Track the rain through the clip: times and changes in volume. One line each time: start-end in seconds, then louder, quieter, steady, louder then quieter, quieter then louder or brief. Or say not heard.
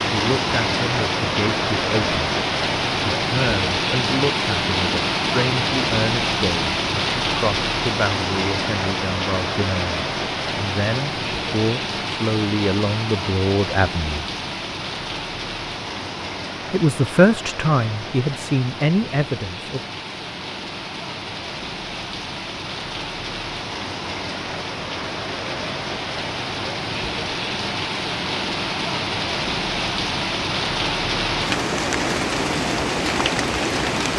0.0-34.1 quieter then louder.